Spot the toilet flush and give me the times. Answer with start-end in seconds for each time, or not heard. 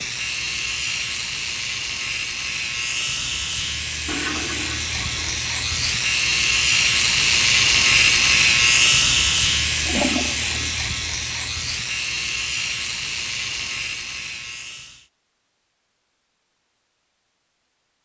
4.0-5.4, 9.8-10.8.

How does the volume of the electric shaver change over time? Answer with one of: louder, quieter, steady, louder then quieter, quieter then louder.
louder then quieter.